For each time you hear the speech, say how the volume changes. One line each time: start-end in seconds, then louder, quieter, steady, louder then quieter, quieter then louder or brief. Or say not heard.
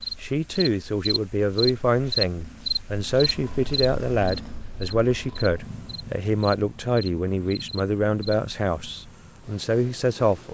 0.2-10.4 steady.